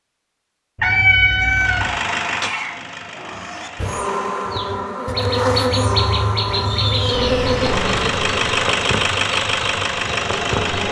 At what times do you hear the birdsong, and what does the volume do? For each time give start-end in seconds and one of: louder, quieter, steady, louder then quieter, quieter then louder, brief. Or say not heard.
4.5-10.8 quieter.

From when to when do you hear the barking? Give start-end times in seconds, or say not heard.
not heard.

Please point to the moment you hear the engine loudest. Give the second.
9 s.